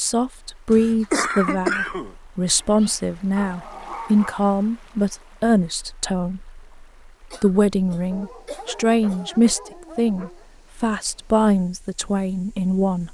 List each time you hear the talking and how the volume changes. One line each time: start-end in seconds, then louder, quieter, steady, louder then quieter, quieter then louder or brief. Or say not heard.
0.0-13.0 steady.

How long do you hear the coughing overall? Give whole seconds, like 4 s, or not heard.
3 s.